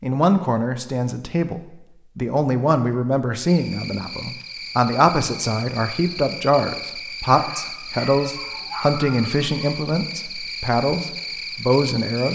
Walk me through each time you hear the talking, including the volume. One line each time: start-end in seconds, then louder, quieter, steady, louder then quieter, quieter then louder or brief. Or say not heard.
0.0-12.3 steady.